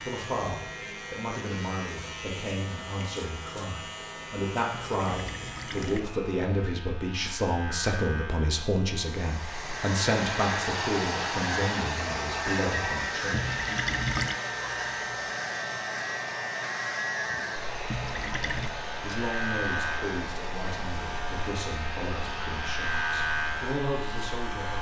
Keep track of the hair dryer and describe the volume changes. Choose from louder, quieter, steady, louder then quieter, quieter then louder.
quieter.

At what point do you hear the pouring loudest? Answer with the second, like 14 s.
14 s.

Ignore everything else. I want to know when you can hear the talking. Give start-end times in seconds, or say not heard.
0.0-13.6, 19.0-24.7.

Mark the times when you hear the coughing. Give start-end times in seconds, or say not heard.
not heard.